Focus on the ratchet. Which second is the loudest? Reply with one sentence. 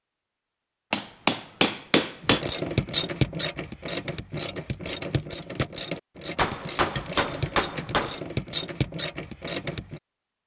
The volume of the ratchet peaks at 3 seconds.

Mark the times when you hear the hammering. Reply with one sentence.
The hammering can be heard from 0.9 to 2.4 s and from 6.3 to 8.2 s.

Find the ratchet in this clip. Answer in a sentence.
You can hear the ratchet from 2.2 to 10.0 s.